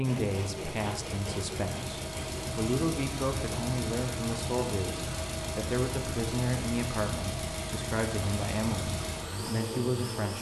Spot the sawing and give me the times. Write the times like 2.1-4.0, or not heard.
0.0-2.6.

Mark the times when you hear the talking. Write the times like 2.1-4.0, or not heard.
0.0-10.3.